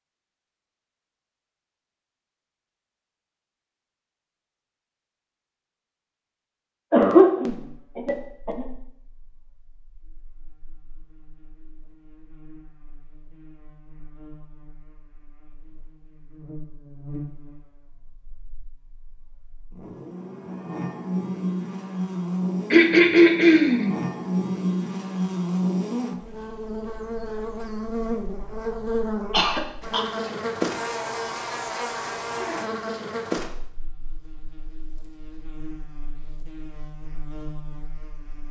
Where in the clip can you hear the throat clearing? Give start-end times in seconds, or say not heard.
6.9-8.7, 22.7-23.9, 29.3-30.3.